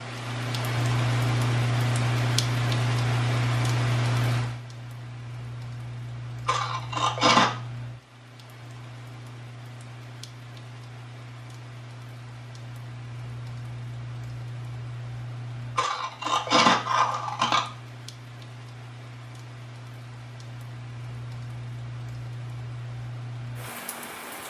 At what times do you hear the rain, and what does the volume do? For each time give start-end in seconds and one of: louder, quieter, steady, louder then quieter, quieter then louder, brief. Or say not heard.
0.0-24.4 quieter.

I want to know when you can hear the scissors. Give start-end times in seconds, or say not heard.
6.5-7.5, 15.8-17.6.